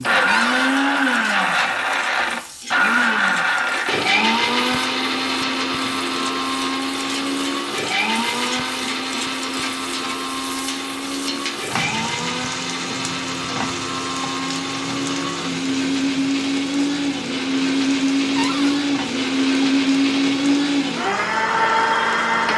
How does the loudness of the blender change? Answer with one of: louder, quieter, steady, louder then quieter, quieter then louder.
quieter then louder.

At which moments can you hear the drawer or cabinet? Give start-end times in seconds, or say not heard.
0.2-0.7, 18.4-18.8.